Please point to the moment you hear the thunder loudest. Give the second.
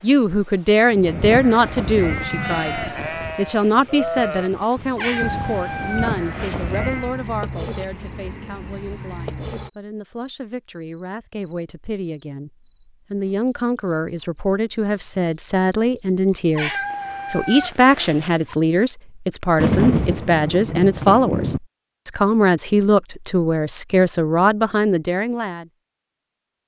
20 s.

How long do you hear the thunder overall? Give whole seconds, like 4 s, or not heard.
4 s.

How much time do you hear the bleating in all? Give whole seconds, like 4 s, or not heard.
6 s.